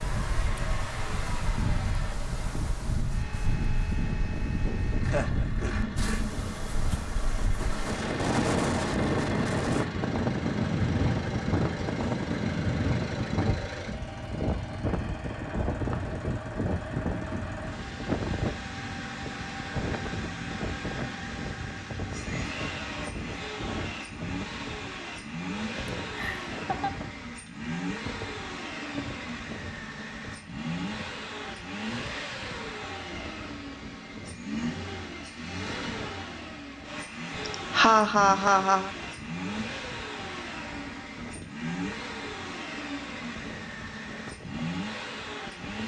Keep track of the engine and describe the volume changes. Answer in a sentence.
The volume of the engine stays about the same.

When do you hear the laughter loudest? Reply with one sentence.
The loudest moment of the laughter is at 38 seconds.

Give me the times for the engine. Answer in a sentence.
You can hear the engine from 0.0 to 45.8 s.